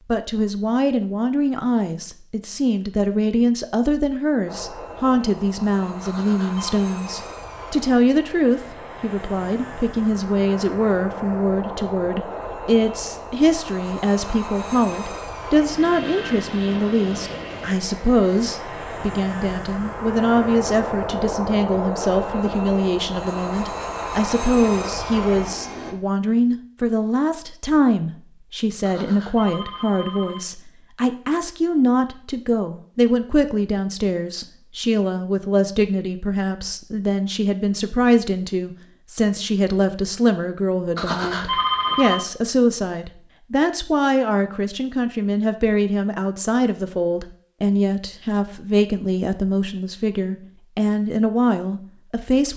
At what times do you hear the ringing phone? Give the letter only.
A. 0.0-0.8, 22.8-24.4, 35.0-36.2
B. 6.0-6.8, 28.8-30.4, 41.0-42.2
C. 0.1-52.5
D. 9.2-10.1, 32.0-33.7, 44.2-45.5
B.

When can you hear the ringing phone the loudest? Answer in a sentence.
The volume of the ringing phone peaks at 42 seconds.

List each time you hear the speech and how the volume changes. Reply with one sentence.
The speech can be heard from 0.1 to 52.5 s, at a steady volume.